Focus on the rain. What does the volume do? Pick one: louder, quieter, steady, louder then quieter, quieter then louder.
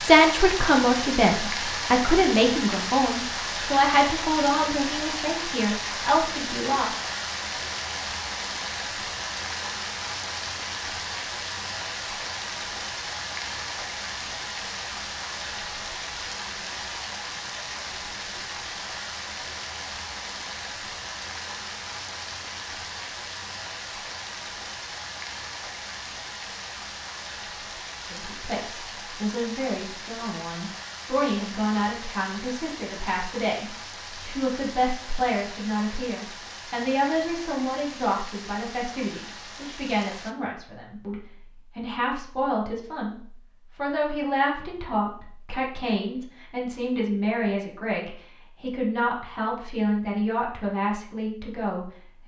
quieter.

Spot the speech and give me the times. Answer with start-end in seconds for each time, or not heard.
0.0-7.0, 28.1-52.2.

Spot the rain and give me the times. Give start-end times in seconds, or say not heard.
0.0-40.4.